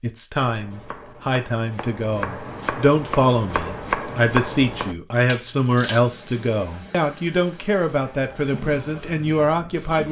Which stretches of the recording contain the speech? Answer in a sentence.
You can hear the speech from 0.0 to 10.0 s.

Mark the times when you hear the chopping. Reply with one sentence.
You can hear the chopping from 0.5 to 6.0 s.